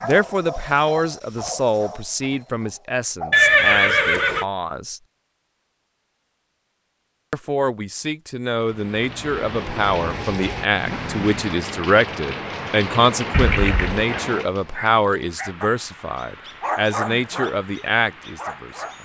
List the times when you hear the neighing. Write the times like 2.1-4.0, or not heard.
3.3-4.5, 13.3-14.1.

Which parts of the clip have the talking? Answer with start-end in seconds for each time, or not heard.
0.0-5.0, 7.3-19.0.